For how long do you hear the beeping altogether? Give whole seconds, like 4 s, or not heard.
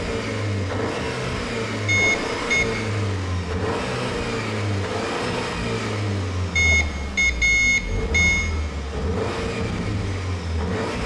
3 s.